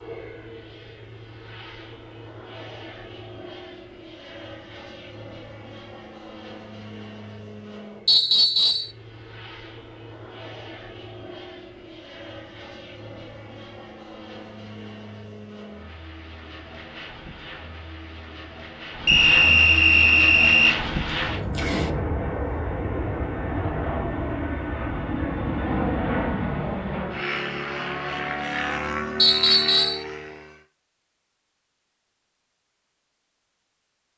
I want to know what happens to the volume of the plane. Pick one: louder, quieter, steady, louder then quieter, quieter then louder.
louder.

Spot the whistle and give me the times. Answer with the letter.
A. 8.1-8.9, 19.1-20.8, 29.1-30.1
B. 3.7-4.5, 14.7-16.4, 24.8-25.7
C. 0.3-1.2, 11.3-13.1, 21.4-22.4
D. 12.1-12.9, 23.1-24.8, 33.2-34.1
A.